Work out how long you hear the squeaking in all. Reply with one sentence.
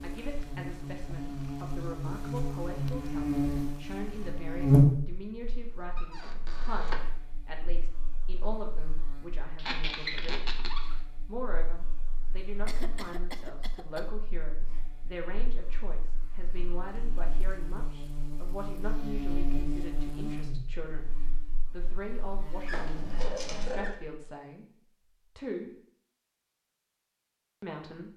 You can hear the squeaking for 4 seconds altogether.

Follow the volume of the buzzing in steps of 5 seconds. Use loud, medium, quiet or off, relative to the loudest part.
loud, quiet, quiet, quiet, quiet, off.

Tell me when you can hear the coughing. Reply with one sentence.
The coughing can be heard from 12.7 to 14.1 s.